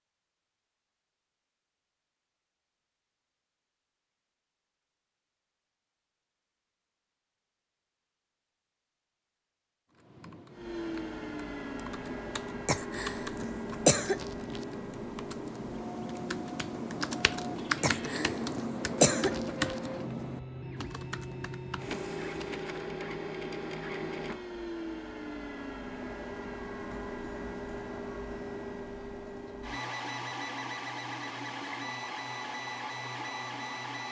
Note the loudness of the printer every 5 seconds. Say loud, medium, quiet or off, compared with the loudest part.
off, off, loud, medium, loud, loud, loud.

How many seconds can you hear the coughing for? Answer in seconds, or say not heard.
4 s.